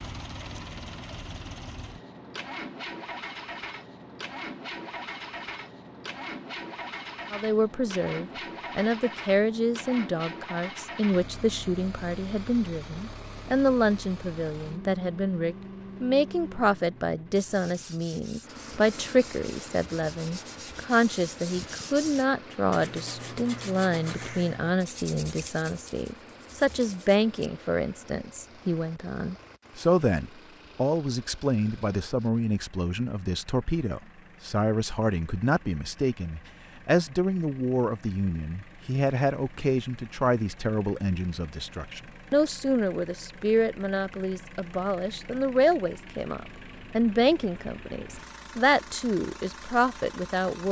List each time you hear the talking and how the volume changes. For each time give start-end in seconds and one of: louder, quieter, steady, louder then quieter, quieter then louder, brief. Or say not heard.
7.3-50.6 steady.